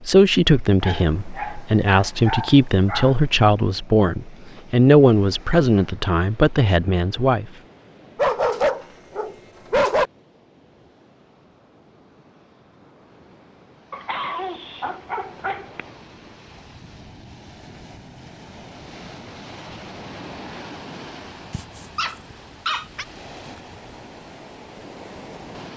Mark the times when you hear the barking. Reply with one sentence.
The barking can be heard from 0.8 to 3.1 s, from 8.2 to 10.1 s, from 13.9 to 15.8 s and from 21.5 to 23.1 s.